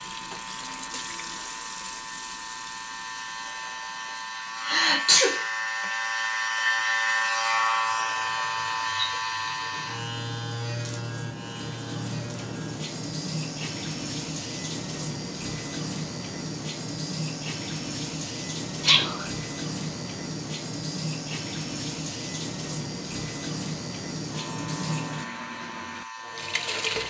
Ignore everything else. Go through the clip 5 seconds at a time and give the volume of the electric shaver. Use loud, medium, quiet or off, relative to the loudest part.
medium, loud, medium, quiet, quiet, quiet.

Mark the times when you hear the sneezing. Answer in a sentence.
The sneezing can be heard from 4.6 to 5.8 s and from 18.8 to 19.2 s.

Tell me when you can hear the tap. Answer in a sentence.
The tap can be heard from 0.0 to 27.0 s.